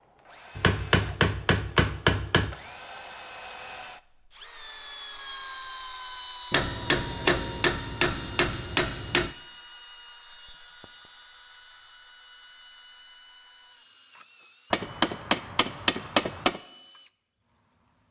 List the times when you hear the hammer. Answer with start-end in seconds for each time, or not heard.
0.6-2.5, 6.5-9.3, 14.7-16.6.